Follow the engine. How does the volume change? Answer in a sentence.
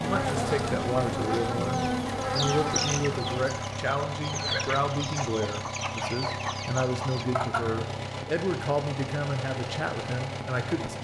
The volume of the engine stays about the same.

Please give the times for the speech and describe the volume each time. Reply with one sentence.
You can hear the speech from 0.0 to 10.9 s, at a steady volume.